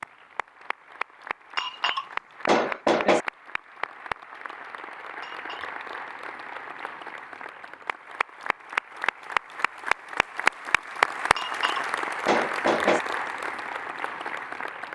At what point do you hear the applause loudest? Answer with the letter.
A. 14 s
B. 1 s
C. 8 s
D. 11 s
D.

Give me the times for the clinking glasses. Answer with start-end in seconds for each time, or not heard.
1.6-3.2, 5.2-5.8, 11.3-13.0.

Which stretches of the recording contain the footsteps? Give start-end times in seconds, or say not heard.
not heard.